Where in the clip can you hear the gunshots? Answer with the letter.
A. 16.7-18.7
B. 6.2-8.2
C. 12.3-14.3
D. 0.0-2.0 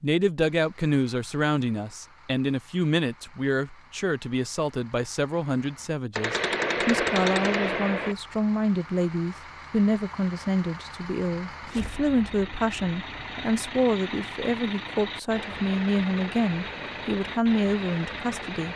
B.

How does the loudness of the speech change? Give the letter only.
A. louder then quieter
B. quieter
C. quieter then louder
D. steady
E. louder
D.